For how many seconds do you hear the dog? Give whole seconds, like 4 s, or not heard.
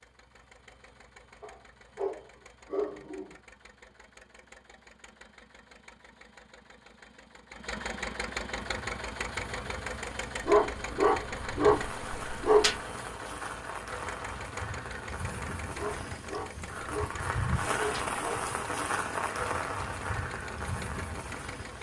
7 s.